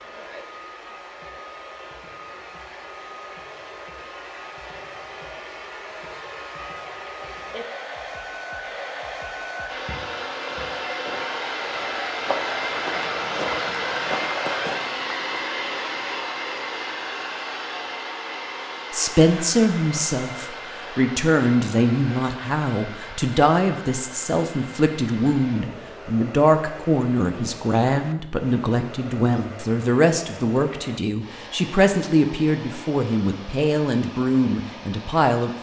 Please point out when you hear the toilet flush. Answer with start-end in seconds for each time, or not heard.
not heard.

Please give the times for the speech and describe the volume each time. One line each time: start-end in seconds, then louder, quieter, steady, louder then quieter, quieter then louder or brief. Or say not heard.
18.9-35.5 steady.